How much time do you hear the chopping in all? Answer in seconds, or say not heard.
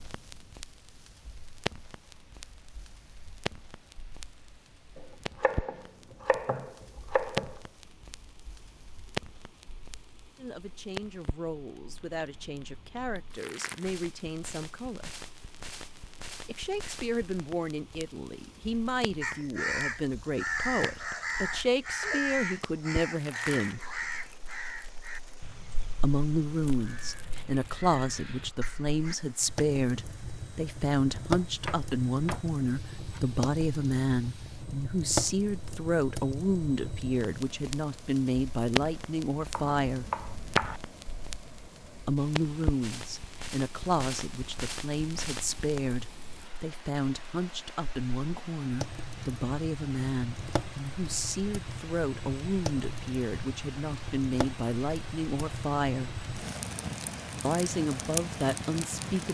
6 s.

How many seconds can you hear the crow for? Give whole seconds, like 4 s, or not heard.
10 s.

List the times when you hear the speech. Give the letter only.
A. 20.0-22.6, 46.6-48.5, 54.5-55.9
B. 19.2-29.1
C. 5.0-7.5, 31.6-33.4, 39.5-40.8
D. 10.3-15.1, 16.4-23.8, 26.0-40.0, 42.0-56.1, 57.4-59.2
D.